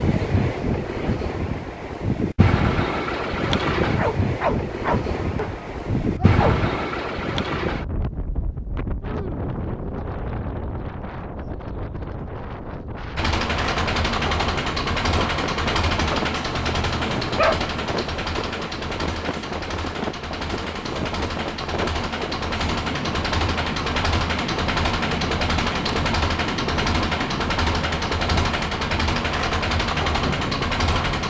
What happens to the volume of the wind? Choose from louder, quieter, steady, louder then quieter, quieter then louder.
quieter.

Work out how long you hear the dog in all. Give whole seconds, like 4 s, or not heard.
4 s.